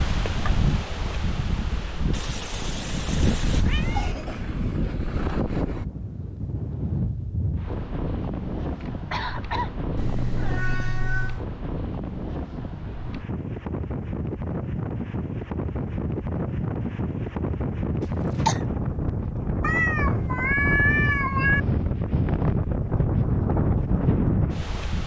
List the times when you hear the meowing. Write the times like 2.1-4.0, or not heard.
2.1-4.2, 9.9-11.4, 19.6-21.6.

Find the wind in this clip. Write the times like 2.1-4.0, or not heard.
0.0-25.0.